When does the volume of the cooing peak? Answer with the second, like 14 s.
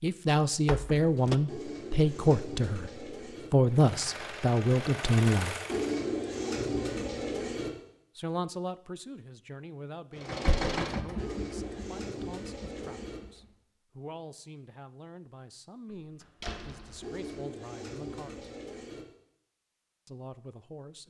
6 s.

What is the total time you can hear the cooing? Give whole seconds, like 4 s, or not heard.
8 s.